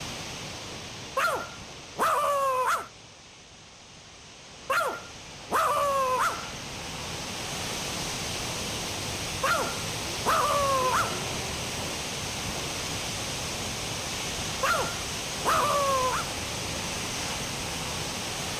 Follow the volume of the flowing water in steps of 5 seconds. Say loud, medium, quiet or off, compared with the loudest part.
medium, loud, loud, loud.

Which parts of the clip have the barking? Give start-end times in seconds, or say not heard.
1.1-2.9, 4.7-6.5, 9.4-11.2, 14.6-16.3.